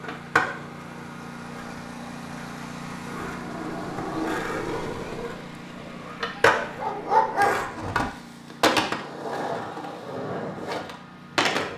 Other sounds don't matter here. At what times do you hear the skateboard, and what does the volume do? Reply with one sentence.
The skateboard can be heard from 0.0 to 11.7 s, getting louder then quieter.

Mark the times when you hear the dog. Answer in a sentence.
The dog can be heard from 6.3 to 8.1 s.